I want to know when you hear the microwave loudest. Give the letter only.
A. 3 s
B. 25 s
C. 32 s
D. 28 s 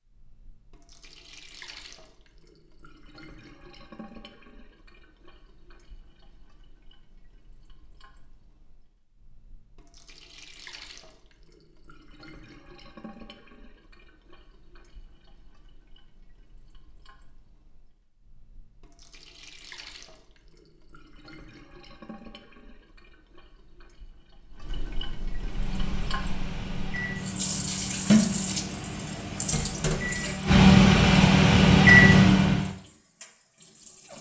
C.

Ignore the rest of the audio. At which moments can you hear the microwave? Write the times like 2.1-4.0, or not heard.
25.3-32.7.